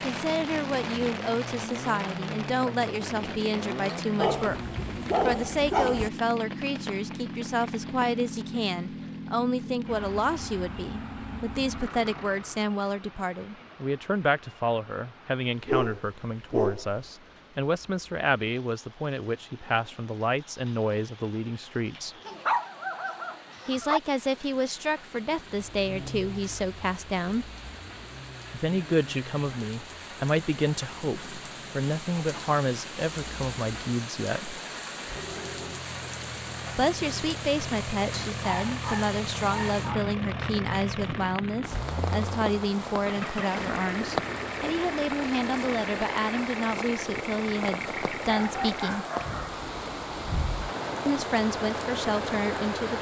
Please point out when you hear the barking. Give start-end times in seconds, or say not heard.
4.2-6.1, 15.7-17.0, 22.2-24.0, 38.4-40.0, 48.2-49.6.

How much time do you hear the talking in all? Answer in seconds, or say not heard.
46 s.